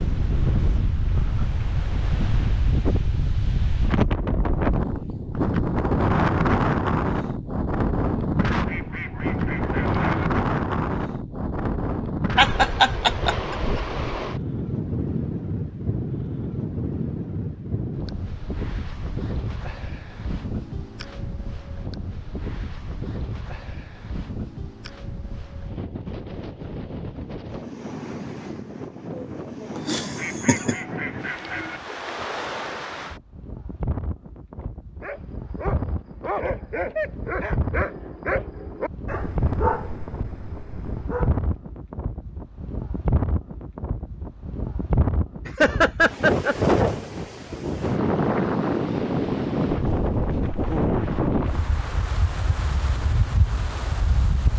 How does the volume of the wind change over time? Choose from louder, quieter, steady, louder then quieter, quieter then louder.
quieter then louder.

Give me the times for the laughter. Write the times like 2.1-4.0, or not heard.
12.3-13.3, 29.8-30.8, 45.5-46.5.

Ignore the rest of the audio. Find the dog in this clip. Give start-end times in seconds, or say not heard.
35.0-41.4.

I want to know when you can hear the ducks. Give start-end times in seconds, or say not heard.
8.5-10.3, 30.0-31.8.